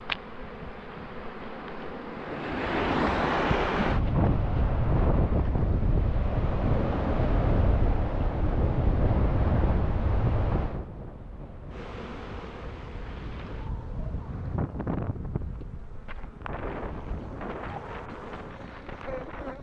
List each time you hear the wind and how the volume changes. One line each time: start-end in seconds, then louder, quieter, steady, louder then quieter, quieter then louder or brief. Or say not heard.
0.0-19.5 quieter.